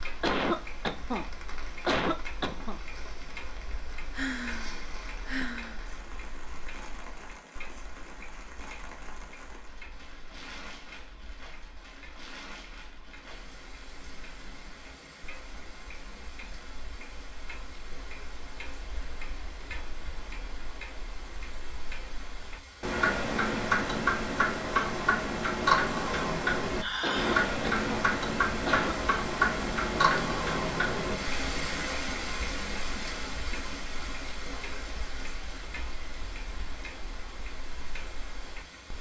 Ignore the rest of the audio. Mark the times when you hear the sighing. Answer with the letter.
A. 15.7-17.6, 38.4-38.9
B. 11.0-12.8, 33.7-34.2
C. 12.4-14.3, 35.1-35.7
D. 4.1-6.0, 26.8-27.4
D.